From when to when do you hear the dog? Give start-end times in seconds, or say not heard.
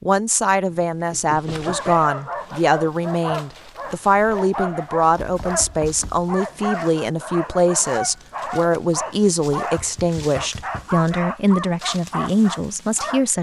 1.4-13.2.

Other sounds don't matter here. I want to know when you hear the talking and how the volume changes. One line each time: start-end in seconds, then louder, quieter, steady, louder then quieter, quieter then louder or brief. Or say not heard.
0.0-13.3 steady.